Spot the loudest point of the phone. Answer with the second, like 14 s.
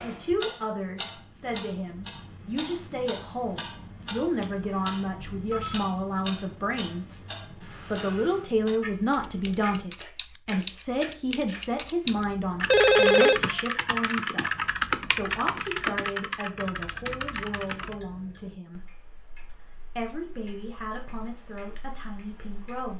13 s.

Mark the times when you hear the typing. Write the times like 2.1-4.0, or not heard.
9.1-17.9.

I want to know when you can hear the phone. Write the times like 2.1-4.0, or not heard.
5.3-5.8, 12.7-13.4.